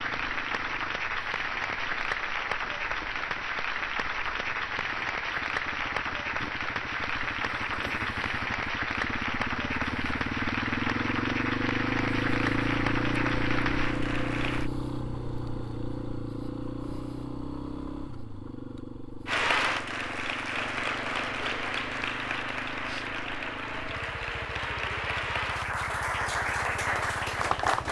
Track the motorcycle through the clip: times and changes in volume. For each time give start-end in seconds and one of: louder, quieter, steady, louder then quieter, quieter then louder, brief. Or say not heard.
0.0-27.8 louder then quieter.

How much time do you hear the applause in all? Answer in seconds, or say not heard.
23 s.